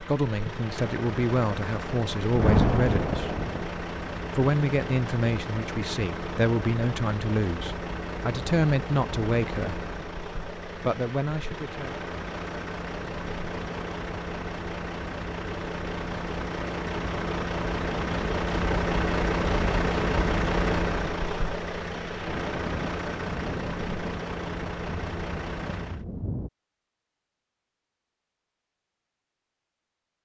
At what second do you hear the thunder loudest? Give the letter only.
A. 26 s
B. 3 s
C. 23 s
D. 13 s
B.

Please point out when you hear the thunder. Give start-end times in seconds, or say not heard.
2.3-3.7, 22.2-26.5.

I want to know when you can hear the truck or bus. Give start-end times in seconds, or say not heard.
0.0-26.1.